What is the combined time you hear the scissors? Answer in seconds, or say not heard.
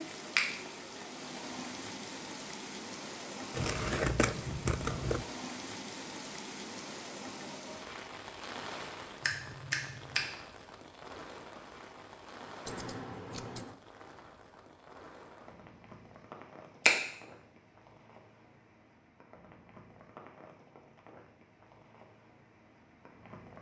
3 s.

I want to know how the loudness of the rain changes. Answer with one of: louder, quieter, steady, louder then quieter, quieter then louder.
quieter.